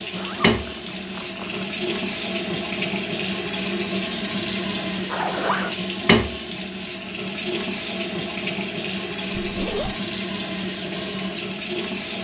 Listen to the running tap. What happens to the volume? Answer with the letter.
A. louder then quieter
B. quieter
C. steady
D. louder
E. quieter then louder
C.